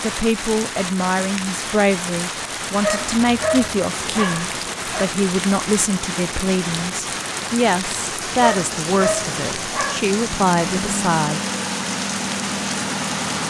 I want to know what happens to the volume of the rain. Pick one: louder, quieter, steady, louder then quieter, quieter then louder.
steady.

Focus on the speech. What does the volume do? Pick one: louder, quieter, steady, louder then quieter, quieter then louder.
steady.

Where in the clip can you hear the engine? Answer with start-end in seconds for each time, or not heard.
3.1-13.4.